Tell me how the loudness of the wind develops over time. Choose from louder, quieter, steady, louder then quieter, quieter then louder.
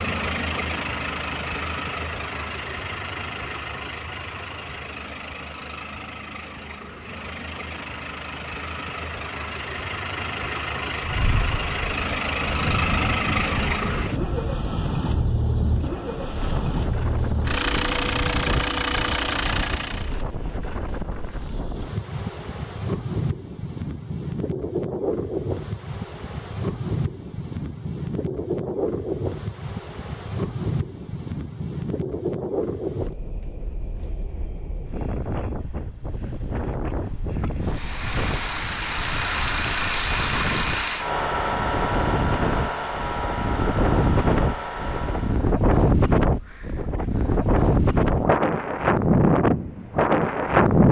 louder.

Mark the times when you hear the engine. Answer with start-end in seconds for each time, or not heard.
0.0-20.1, 37.6-45.5.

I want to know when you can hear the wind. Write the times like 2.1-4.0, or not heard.
10.9-50.8.